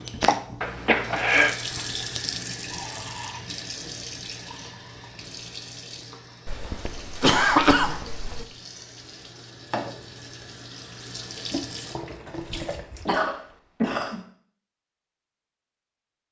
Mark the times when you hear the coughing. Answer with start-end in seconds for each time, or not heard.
0.6-1.6, 6.5-8.4, 12.2-14.2.